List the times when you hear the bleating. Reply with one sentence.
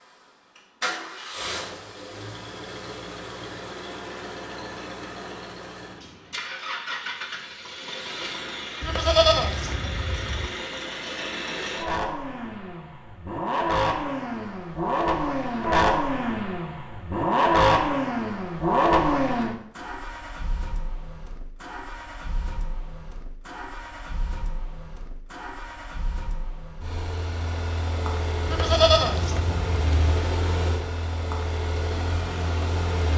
The bleating can be heard from 8.8 to 10.5 s and from 28.4 to 30.1 s.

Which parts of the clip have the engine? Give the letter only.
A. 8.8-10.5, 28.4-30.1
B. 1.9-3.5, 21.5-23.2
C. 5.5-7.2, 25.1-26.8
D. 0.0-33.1
D.